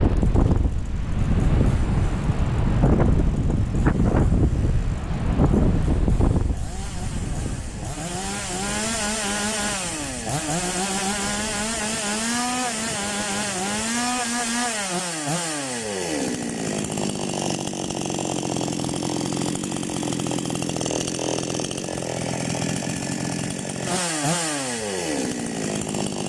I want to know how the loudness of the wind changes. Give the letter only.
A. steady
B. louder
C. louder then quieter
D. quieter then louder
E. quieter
E.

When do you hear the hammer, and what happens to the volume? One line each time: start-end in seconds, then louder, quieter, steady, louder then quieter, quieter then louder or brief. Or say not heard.
not heard.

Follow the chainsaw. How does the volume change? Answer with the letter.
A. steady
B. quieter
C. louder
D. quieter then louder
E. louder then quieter
C.